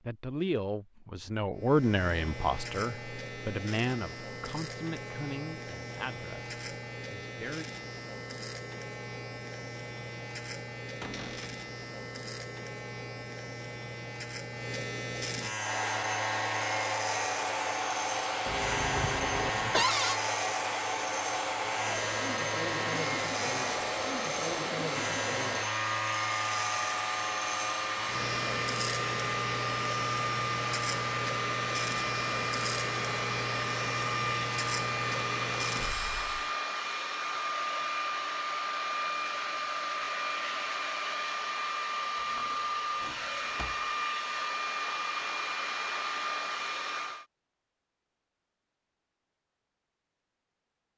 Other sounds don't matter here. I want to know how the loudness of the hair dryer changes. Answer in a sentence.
The volume of the hair dryer stays about the same.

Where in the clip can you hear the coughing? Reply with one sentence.
The coughing can be heard from 18.4 to 19.9 s.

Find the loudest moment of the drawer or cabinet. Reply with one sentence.
The volume of the drawer or cabinet peaks at 20 seconds.